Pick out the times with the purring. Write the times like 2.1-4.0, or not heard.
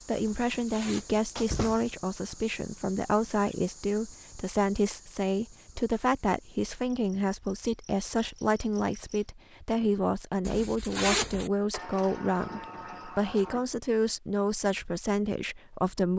not heard.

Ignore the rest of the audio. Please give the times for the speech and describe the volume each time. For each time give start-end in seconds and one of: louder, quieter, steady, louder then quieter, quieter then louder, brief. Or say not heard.
0.1-16.1 steady.